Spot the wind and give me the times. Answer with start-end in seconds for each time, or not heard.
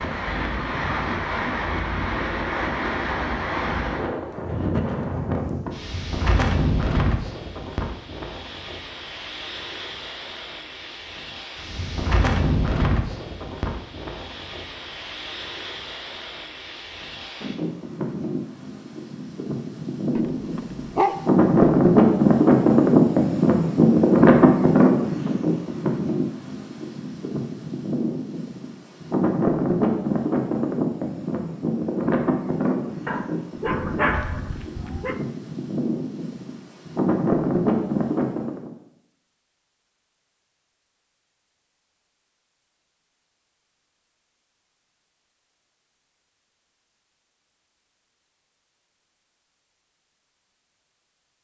0.0-38.7.